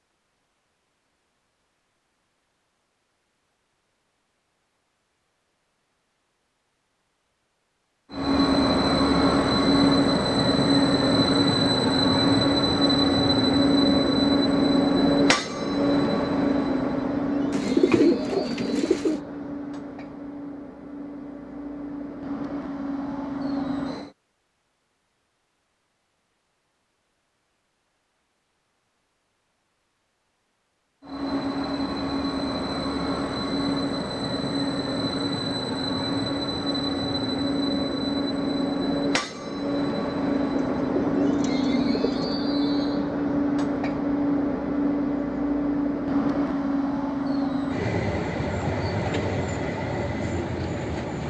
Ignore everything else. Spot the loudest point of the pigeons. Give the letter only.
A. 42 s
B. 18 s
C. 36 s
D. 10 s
B.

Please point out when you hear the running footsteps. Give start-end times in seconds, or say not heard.
not heard.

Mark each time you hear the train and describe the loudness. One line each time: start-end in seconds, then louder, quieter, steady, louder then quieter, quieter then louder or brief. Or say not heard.
8.1-24.1 quieter
31.0-51.2 steady.